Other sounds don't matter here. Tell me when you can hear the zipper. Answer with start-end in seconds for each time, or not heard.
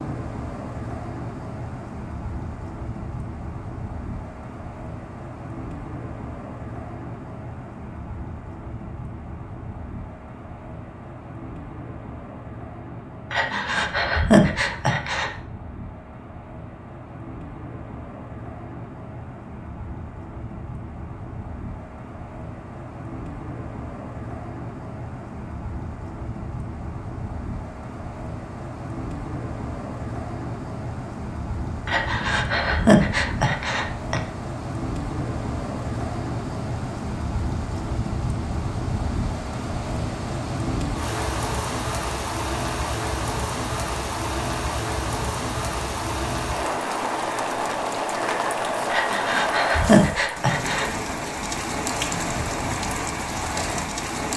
not heard.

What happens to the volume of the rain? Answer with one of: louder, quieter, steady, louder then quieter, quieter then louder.
louder.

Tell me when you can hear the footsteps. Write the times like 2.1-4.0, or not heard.
not heard.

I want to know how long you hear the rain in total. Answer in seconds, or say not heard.
54 s.